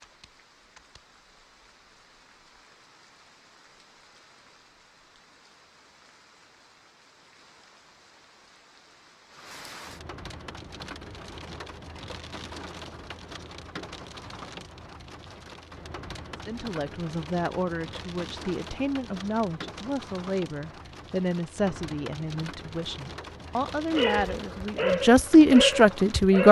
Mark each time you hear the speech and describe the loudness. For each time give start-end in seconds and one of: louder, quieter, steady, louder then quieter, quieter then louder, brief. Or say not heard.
16.4-26.4 louder.